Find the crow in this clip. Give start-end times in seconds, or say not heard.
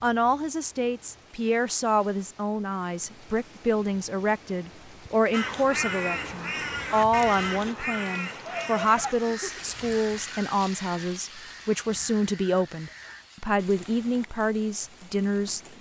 5.3-13.3.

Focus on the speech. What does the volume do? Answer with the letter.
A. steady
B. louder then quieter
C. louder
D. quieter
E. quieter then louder
A.